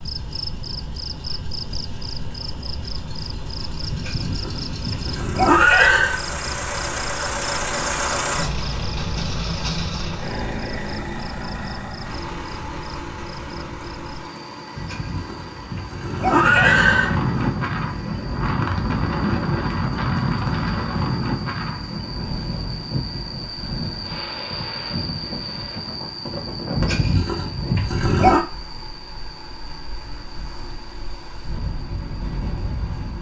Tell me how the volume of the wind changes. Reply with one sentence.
The loudness of the wind goes down.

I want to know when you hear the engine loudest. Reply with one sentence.
The loudest moment of the engine is at 8 seconds.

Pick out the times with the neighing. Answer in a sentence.
The neighing can be heard from 3.9 to 6.2 s, from 14.8 to 17.1 s and from 26.8 to 28.4 s.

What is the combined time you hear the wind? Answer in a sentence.
The wind can be heard for 17 seconds in total.